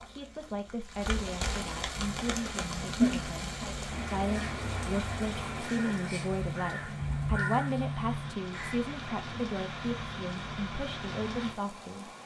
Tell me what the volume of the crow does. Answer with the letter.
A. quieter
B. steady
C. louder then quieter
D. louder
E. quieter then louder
D.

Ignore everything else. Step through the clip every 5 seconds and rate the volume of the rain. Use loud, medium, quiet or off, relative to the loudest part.
loud, medium, medium.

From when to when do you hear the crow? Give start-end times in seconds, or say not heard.
1.9-8.9.